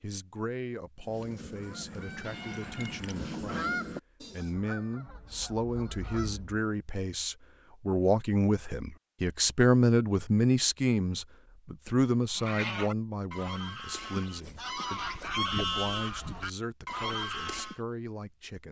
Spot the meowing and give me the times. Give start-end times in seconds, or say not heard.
2.2-3.4.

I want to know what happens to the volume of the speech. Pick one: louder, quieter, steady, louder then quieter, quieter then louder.
louder then quieter.